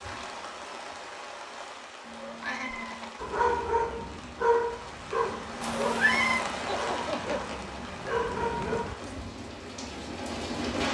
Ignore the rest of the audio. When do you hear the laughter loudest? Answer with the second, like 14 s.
7 s.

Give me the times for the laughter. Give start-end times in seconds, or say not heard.
2.4-3.2, 6.7-7.5.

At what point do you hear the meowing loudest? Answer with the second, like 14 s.
6 s.